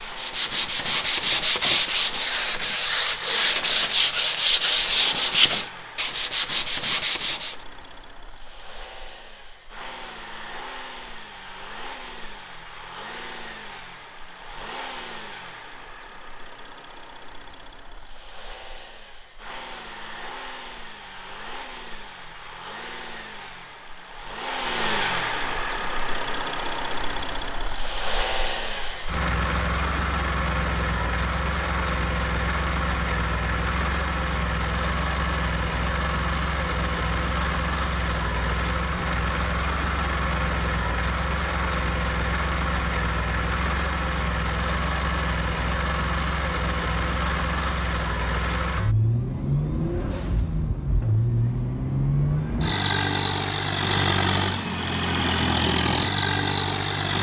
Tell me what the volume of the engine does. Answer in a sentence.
The volume of the engine goes up.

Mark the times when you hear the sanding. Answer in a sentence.
The sanding can be heard from 0.0 to 7.5 s.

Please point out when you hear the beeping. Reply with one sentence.
You can't hear the beeping here.